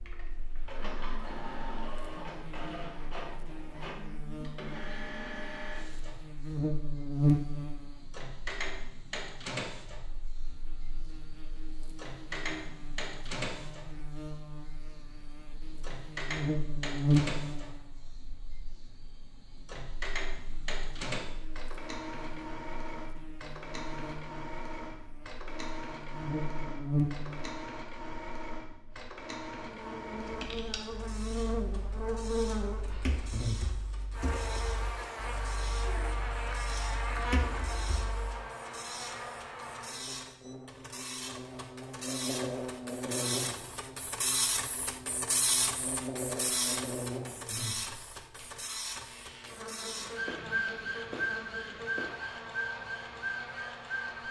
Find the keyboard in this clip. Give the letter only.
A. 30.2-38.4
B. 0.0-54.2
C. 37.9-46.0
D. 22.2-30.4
A.